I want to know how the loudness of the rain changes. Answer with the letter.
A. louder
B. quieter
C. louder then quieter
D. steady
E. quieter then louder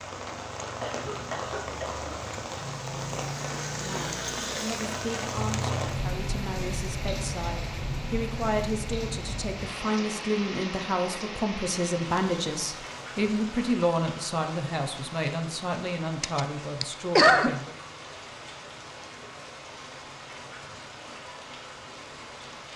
B.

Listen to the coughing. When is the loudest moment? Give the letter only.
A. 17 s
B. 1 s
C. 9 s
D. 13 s
A.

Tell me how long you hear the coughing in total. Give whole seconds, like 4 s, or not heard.
3 s.